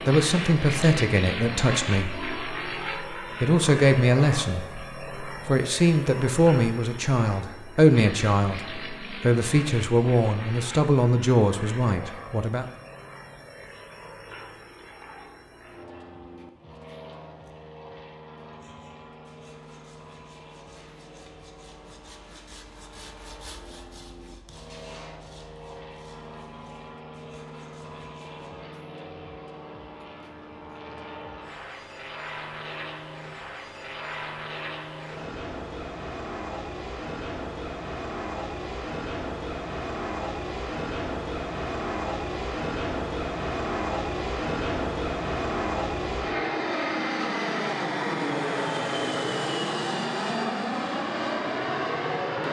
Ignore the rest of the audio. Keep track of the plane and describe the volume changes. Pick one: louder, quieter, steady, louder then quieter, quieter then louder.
quieter then louder.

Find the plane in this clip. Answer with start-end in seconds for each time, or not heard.
0.0-52.4.